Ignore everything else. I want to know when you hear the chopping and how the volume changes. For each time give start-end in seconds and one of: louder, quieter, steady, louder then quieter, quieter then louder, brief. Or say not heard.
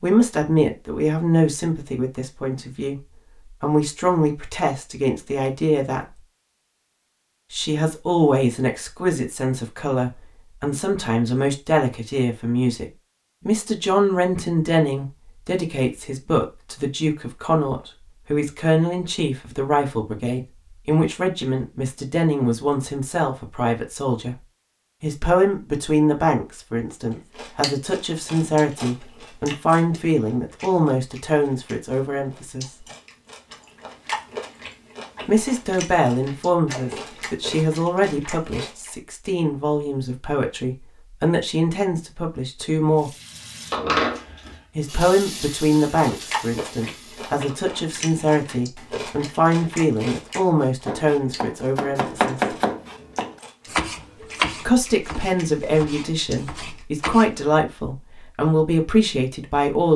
50.9-57.4 quieter.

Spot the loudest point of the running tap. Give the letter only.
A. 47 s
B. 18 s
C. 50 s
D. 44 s
D.